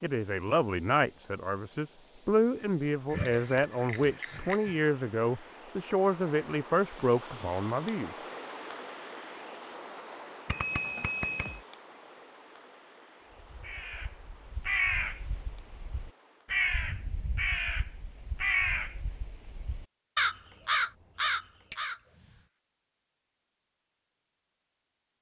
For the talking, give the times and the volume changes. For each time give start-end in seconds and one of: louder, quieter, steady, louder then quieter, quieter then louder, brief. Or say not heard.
0.0-8.1 steady.